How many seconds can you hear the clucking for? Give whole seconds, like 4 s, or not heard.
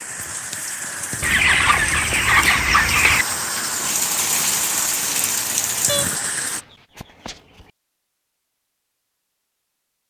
4 s.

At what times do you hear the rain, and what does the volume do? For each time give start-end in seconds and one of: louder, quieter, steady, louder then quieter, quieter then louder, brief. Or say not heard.
0.0-6.7 louder.